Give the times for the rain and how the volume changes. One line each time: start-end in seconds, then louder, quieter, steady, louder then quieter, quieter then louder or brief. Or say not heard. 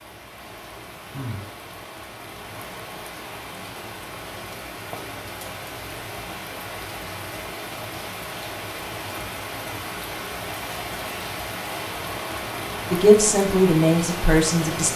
0.0-14.9 louder.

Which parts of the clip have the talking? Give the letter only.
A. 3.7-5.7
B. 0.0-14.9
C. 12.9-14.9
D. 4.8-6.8
C.